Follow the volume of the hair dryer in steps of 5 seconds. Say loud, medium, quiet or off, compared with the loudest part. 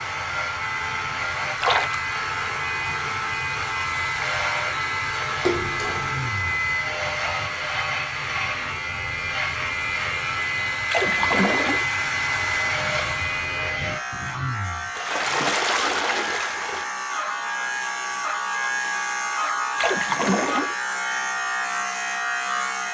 loud, medium, loud, off, off.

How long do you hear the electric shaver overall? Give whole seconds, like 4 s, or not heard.
23 s.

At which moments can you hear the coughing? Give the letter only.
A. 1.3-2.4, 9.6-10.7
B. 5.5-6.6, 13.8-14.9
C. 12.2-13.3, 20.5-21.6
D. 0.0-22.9
B.